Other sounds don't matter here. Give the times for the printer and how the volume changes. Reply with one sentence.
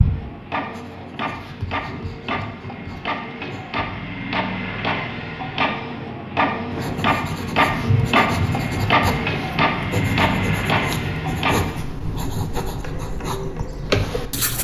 You can hear the printer from 0.0 to 14.6 s, getting louder then quieter.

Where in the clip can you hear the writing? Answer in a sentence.
The writing can be heard from 0.0 to 3.9 s and from 6.7 to 14.6 s.